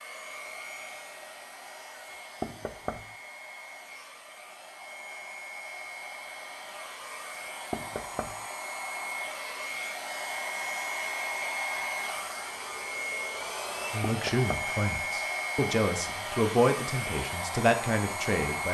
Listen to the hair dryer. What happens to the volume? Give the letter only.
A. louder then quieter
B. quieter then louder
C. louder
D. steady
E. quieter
C.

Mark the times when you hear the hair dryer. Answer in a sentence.
You can hear the hair dryer from 0.0 to 18.6 s.